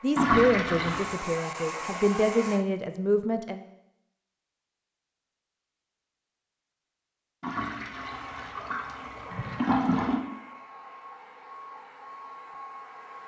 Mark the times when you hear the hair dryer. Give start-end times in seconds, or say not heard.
0.0-2.6, 7.9-13.2.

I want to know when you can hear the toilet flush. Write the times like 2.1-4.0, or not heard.
0.1-1.1, 7.4-10.2.